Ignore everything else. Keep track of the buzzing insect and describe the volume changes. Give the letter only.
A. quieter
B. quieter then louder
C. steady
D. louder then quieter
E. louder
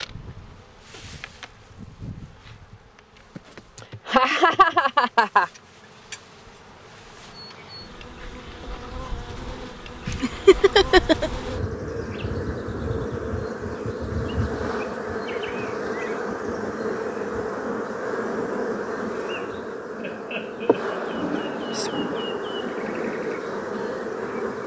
E.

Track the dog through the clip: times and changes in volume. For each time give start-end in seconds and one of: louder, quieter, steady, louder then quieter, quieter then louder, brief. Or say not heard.
not heard.